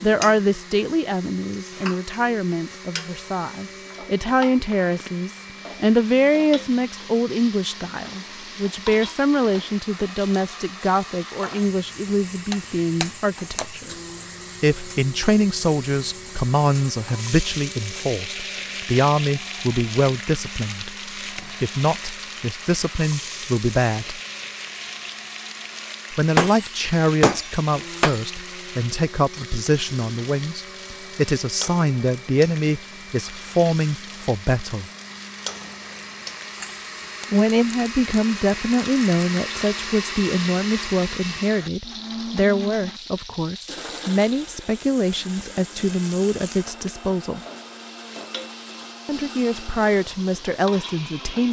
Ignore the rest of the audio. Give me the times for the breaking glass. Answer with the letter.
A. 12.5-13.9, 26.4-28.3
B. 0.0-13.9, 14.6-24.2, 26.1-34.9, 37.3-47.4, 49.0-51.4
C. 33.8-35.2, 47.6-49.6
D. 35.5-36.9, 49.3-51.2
A.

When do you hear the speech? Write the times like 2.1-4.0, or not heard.
0.0-13.9, 14.6-24.2, 26.1-34.9, 37.3-47.4, 49.0-51.4.